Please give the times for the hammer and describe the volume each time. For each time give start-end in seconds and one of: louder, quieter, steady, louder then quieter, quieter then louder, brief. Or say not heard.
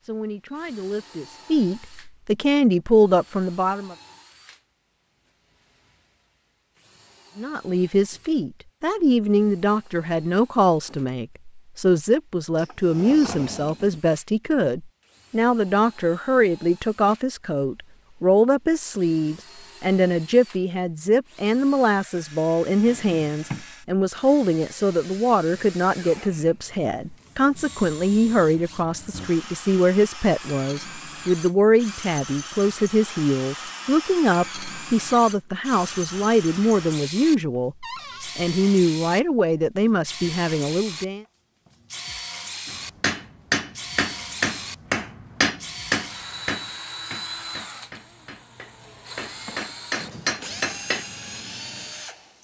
42.6-51.0 quieter then louder.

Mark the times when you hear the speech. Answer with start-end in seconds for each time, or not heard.
0.0-4.0, 7.3-41.2.